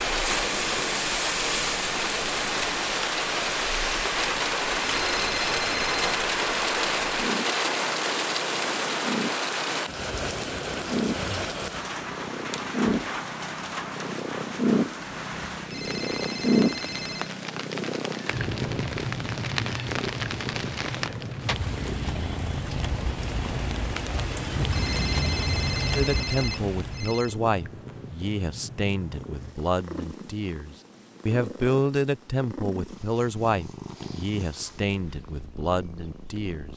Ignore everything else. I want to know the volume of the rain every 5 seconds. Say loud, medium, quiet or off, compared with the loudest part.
loud, loud, medium, medium, medium, medium, off, off.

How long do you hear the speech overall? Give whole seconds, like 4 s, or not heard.
11 s.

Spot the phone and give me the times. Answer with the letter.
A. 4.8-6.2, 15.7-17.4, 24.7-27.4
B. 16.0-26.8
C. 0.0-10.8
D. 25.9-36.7
A.